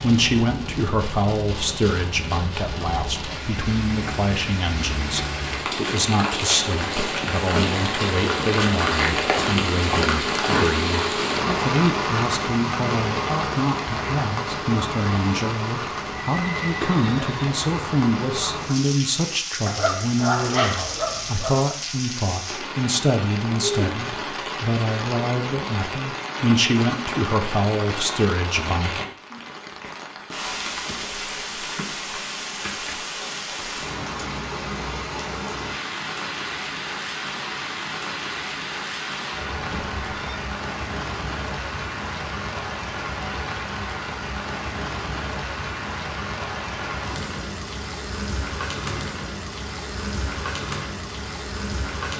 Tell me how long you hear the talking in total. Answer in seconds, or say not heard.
29 s.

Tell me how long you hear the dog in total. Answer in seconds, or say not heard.
2 s.